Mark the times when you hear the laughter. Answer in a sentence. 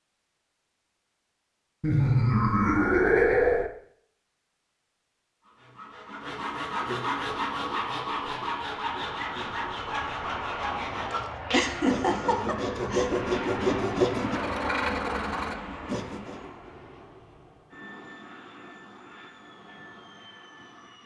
The laughter can be heard from 1.8 to 3.7 s and from 11.5 to 13.1 s.